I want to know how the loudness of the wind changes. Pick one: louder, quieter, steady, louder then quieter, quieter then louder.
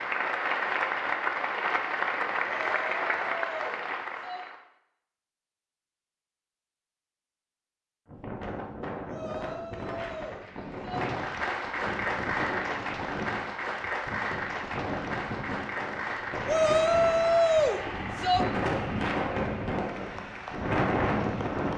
louder.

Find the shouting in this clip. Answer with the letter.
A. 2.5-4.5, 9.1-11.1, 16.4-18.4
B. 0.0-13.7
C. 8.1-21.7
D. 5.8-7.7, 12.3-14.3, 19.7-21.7
A.